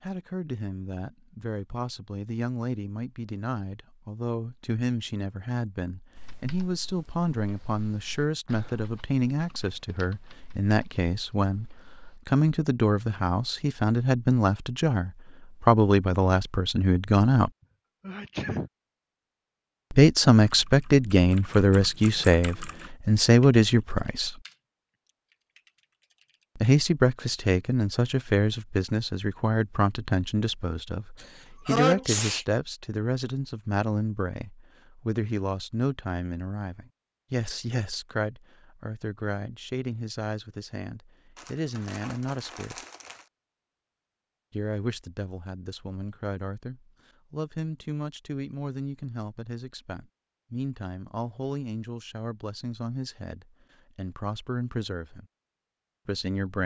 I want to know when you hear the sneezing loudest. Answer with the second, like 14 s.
32 s.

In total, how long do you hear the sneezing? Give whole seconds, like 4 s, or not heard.
2 s.